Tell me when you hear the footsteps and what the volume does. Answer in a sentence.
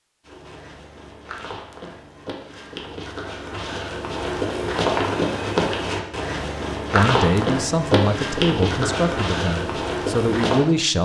You can hear the footsteps from 0.2 to 10.7 s, getting louder.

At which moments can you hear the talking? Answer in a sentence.
The talking can be heard from 6.9 to 10.9 s.